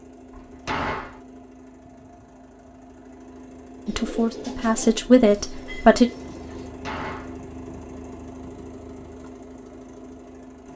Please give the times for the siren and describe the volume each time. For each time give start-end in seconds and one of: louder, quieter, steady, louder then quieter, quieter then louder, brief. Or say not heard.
not heard.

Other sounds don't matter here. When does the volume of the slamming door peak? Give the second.
1 s.